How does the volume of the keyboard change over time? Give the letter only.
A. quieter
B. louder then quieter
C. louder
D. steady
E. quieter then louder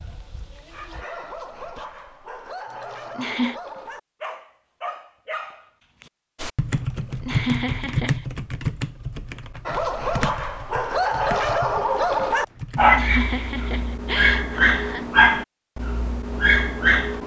A.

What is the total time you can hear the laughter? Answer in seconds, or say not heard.
5 s.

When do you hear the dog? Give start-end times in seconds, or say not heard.
0.0-6.1, 9.7-17.2.